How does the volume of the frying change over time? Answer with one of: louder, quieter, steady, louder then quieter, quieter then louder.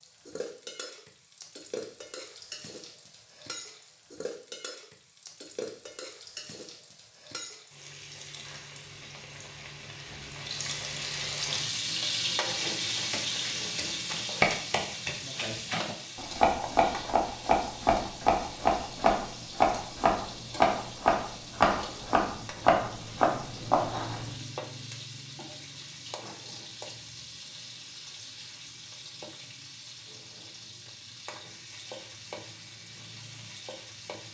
louder then quieter.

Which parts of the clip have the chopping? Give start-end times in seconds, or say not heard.
13.1-24.3.